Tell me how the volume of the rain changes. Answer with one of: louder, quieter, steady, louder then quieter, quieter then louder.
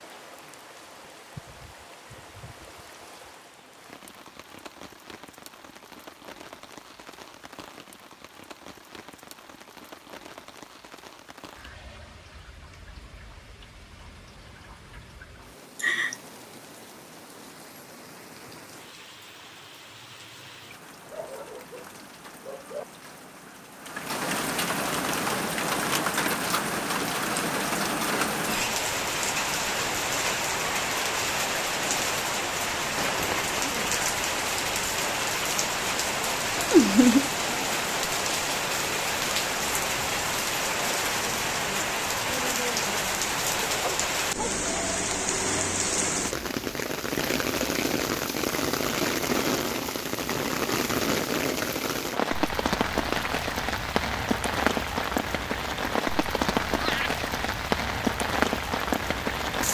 louder.